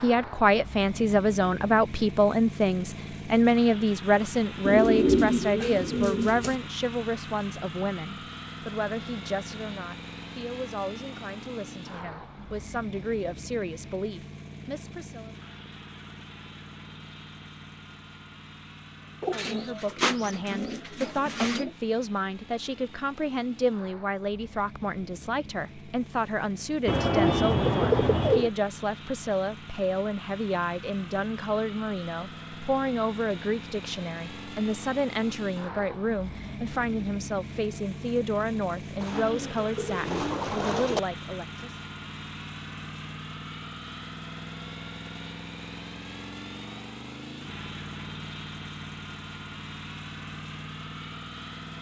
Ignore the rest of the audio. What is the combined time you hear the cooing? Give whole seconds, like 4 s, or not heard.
8 s.